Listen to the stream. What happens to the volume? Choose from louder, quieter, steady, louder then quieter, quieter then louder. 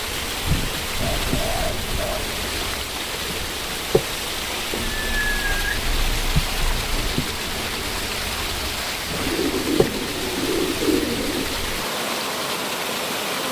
steady.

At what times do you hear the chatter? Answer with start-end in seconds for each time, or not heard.
not heard.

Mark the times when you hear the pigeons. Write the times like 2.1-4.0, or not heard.
0.4-2.1, 4.7-7.2, 9.1-11.6.